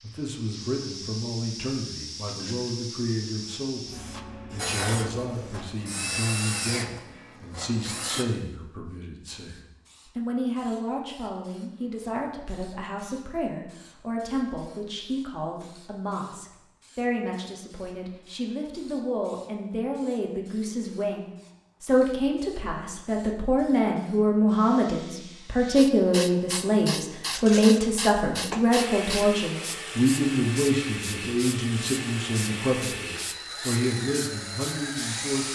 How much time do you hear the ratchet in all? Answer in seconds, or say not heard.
not heard.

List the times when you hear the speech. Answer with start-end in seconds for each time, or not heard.
0.0-3.9, 4.5-35.5.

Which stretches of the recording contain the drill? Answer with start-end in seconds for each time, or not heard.
4.5-8.2, 28.7-35.5.